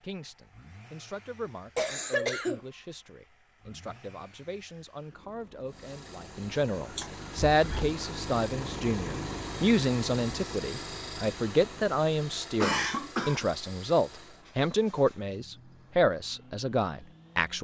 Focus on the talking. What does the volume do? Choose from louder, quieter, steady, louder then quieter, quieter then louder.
louder.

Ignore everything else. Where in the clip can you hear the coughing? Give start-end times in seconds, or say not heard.
1.8-2.6, 7.0-8.0, 12.6-13.4.